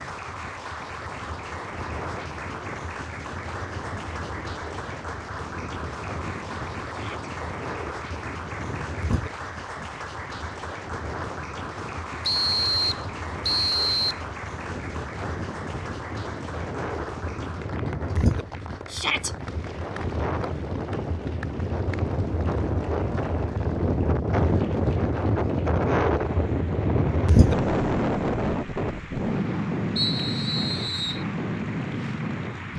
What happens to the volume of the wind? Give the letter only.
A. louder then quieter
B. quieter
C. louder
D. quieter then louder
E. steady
C.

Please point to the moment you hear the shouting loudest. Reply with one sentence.
The volume of the shouting peaks at 19 seconds.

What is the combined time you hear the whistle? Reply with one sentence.
The whistle can be heard for 3 seconds in total.